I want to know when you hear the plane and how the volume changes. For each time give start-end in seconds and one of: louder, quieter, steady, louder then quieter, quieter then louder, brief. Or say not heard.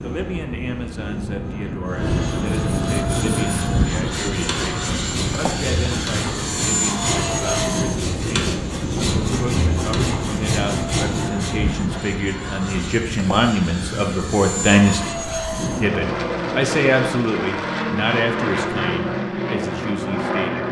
0.0-20.6 steady.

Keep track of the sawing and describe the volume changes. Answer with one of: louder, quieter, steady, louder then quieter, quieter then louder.
steady.